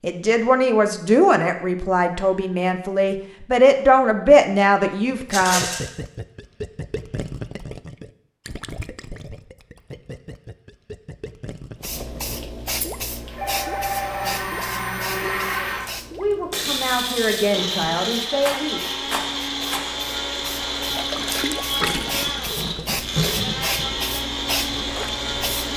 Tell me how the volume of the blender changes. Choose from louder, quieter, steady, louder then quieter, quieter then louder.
steady.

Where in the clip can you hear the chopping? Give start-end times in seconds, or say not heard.
not heard.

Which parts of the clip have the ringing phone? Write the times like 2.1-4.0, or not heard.
13.3-14.3.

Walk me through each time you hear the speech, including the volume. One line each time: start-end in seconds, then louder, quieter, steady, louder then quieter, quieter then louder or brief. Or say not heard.
0.0-5.7 quieter then louder
16.1-18.9 brief.